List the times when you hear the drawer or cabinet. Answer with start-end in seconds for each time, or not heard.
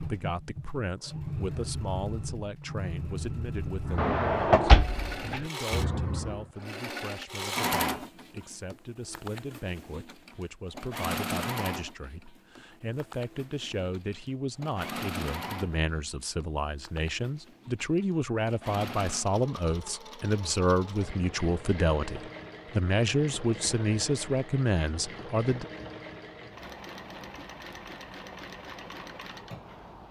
4.0-5.5.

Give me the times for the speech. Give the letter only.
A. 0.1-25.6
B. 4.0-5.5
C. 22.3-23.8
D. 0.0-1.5
A.